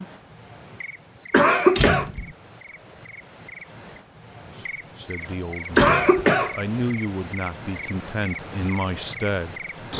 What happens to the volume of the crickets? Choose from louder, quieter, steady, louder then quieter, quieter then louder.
louder.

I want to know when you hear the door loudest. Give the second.
2 s.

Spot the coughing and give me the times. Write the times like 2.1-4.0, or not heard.
1.3-2.1, 5.8-6.5.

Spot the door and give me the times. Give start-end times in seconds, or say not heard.
1.8-2.4, 5.8-6.2.